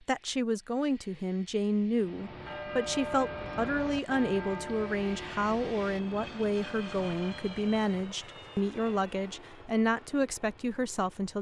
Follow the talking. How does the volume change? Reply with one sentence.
The loudness of the talking stays about the same.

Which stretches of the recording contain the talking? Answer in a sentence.
You can hear the talking from 0.1 to 11.3 s.